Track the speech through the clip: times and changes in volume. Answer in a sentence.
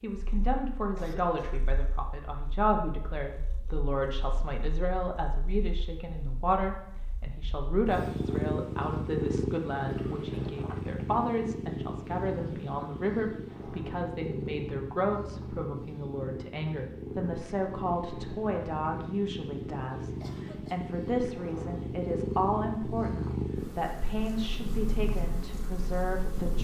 The speech can be heard from 0.0 to 26.6 s, at a steady volume.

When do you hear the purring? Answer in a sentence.
You can hear the purring from 0.2 to 26.6 s.